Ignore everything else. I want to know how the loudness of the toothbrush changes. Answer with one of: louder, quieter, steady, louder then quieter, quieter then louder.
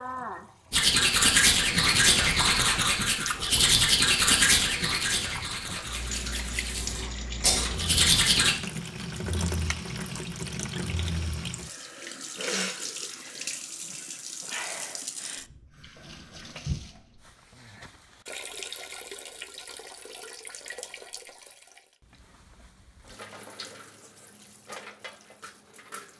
quieter then louder.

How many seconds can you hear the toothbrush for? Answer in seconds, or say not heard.
8 s.